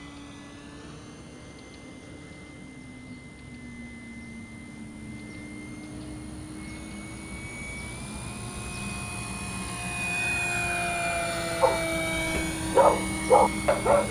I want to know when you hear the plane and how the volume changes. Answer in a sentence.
You can hear the plane from 0.0 to 14.0 s, getting louder.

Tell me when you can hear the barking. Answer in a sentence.
You can hear the barking from 11.6 to 14.0 s.